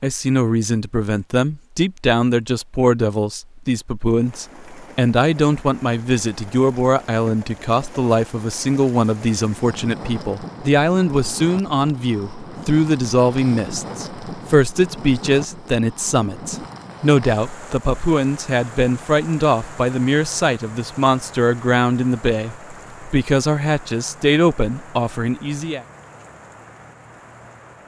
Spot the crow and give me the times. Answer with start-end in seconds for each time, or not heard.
not heard.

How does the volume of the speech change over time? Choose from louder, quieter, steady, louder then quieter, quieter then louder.
steady.